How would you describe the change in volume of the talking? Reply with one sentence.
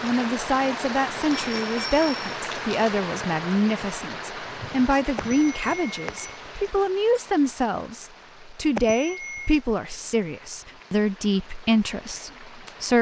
The volume of the talking stays about the same.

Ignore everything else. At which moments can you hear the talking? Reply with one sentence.
You can hear the talking from 0.0 to 12.9 s.